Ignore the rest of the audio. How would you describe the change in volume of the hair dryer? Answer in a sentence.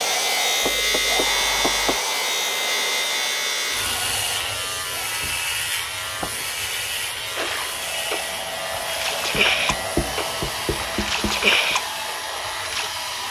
The volume of the hair dryer goes down, then up.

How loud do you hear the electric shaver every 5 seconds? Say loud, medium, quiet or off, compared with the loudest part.
loud, medium, medium.